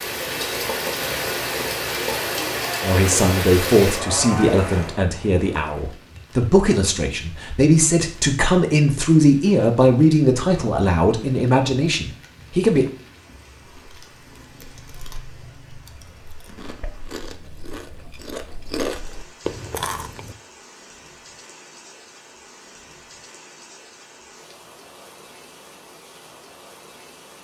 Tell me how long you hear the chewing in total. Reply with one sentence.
You can hear the chewing for 7 seconds altogether.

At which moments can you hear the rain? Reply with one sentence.
The rain can be heard from 0.0 to 27.4 s.